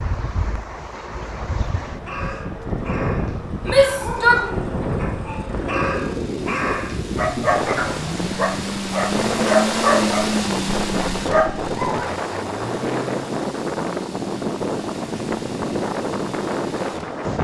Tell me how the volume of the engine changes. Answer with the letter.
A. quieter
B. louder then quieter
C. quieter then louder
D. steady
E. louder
B.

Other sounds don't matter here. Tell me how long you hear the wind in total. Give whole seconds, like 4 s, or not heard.
17 s.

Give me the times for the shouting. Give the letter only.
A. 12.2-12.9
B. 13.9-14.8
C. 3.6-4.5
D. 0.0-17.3
C.